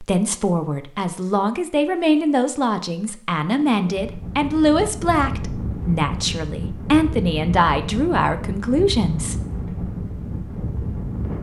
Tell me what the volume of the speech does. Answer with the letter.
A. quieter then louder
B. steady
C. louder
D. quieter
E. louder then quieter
B.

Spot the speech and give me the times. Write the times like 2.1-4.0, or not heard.
0.0-9.3.